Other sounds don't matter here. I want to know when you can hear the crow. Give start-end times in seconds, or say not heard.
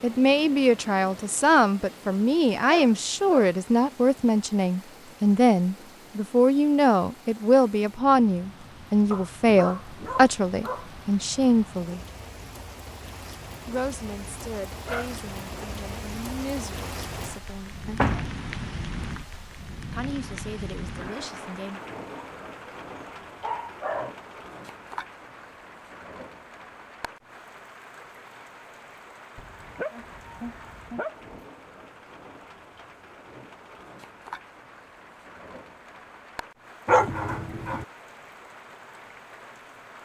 not heard.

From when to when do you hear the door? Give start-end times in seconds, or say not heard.
17.9-18.4.